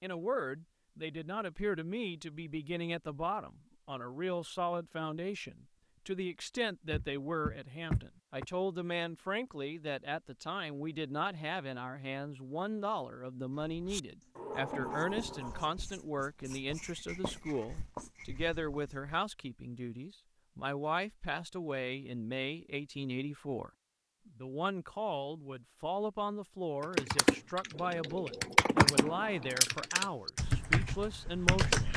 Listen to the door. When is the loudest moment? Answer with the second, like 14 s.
29 s.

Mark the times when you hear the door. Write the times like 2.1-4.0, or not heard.
6.9-8.4, 14.3-15.8, 28.8-29.6.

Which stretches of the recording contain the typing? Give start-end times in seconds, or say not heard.
26.8-31.9.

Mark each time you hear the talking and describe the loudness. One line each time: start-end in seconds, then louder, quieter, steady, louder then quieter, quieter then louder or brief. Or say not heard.
0.0-31.9 steady.